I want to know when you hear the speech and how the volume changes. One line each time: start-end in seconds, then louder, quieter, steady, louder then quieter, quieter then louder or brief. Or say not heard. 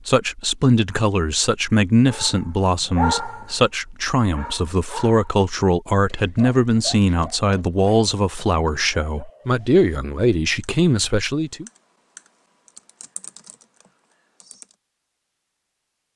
0.1-11.7 steady.